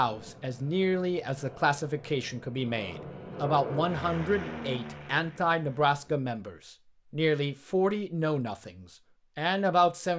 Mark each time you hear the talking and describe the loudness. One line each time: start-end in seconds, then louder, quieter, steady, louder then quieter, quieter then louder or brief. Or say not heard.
0.0-10.1 steady.